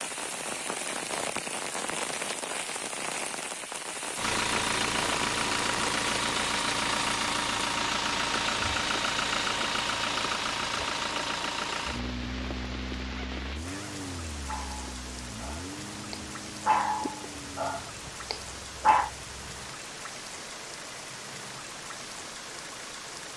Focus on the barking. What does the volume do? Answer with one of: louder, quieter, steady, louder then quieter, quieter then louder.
louder then quieter.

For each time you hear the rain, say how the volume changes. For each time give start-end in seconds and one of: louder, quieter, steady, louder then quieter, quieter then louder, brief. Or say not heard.
0.0-23.3 quieter.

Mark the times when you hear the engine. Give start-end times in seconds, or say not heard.
4.2-23.3.